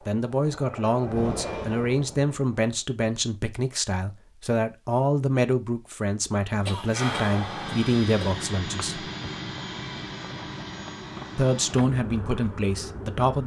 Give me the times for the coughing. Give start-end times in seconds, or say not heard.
6.7-8.3.